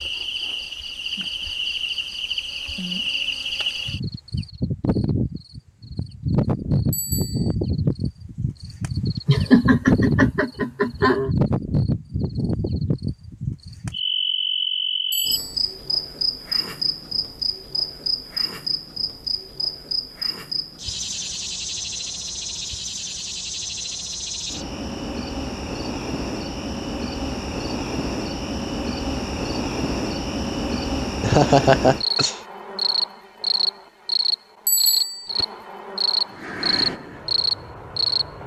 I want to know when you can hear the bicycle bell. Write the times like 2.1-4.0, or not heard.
6.9-7.5, 15.1-15.6, 34.6-35.3.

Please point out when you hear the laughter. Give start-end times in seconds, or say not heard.
9.2-11.3, 31.2-32.4.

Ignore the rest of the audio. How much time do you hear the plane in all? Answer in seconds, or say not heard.
2 s.